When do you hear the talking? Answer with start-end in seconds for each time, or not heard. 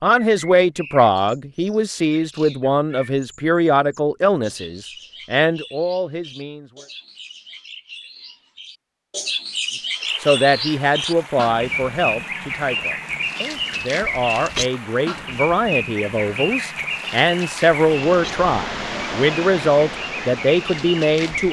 0.0-6.8, 10.2-21.4.